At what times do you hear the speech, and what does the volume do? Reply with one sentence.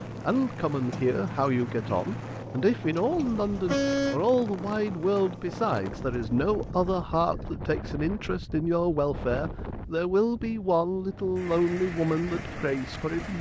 You can hear the speech from 0.2 to 13.3 s, at a steady volume.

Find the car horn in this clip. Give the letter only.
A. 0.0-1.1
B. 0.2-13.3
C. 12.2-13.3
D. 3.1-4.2
D.